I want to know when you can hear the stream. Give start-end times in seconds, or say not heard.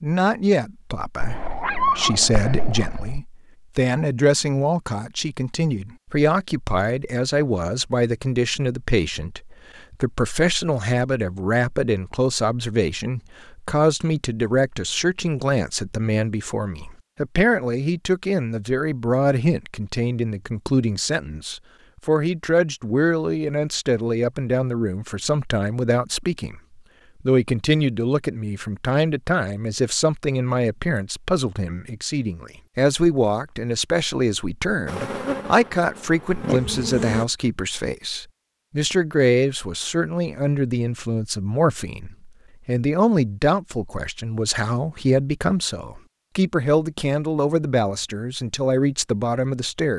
not heard.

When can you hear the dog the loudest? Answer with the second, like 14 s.
2 s.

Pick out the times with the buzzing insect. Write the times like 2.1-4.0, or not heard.
34.9-37.2.